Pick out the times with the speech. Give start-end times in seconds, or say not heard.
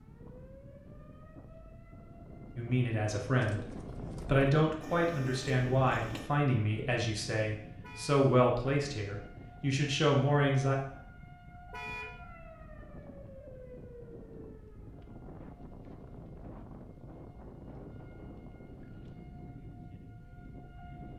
2.5-10.8.